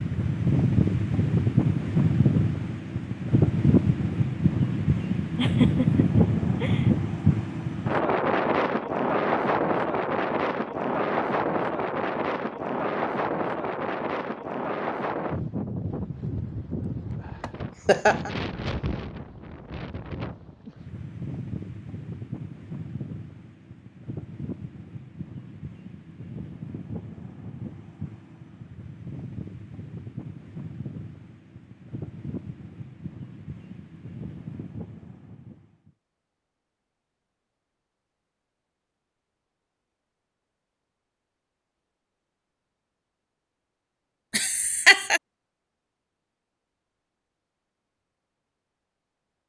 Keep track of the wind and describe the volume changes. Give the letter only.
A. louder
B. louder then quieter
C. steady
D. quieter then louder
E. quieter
E.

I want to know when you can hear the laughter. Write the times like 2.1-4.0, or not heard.
5.3-6.9, 17.4-18.3, 44.3-45.2.